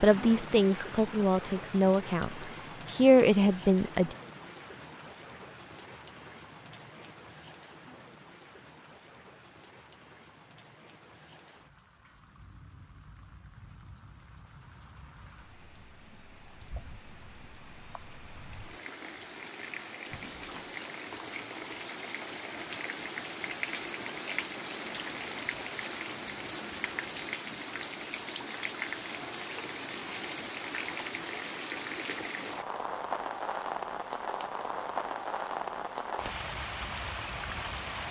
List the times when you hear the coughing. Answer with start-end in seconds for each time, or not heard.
20.1-20.8.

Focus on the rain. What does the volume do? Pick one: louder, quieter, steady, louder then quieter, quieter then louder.
quieter then louder.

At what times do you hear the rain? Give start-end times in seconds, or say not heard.
0.0-38.0.